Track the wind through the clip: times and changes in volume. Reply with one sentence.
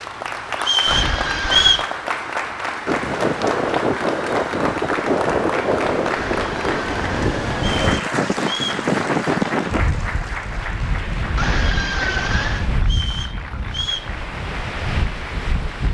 The wind can be heard from 2.9 to 15.9 s, getting quieter.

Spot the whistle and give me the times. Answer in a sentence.
The whistle can be heard from 0.6 to 1.9 s, from 7.5 to 8.8 s and from 12.8 to 14.1 s.